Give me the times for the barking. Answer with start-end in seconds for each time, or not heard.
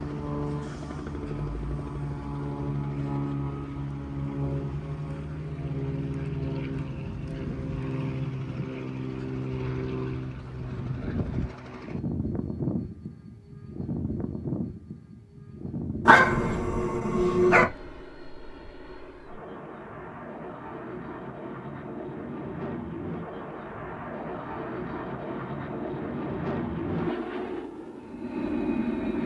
16.1-17.6.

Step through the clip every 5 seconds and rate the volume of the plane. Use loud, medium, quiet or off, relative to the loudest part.
loud, loud, loud, medium, medium, loud.